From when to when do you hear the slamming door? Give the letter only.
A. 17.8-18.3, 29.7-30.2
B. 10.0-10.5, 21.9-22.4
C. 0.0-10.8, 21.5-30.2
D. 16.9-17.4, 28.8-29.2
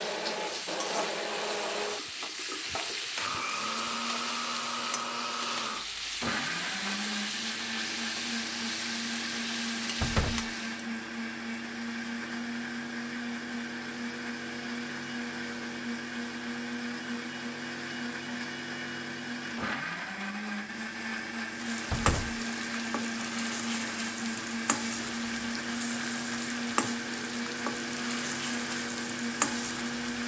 B.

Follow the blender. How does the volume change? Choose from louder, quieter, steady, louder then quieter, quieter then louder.
steady.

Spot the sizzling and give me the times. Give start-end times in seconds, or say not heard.
0.0-10.8, 21.5-30.2.